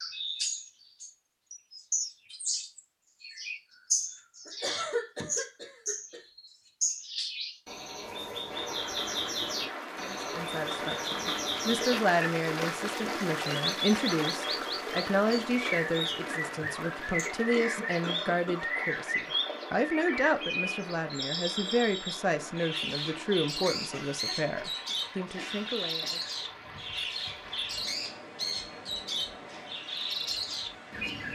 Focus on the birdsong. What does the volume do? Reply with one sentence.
The loudness of the birdsong stays about the same.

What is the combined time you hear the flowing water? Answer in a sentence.
The flowing water can be heard for 23 seconds in total.